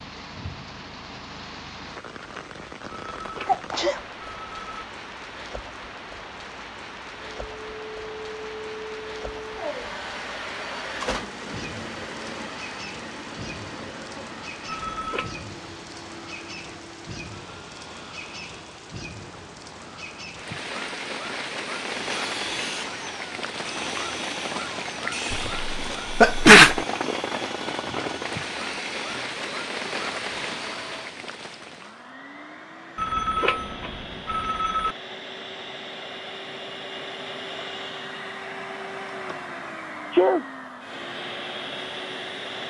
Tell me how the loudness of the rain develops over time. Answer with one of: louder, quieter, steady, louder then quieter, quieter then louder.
louder.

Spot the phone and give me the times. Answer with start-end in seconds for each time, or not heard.
2.9-4.7, 14.7-15.4, 33.0-35.0.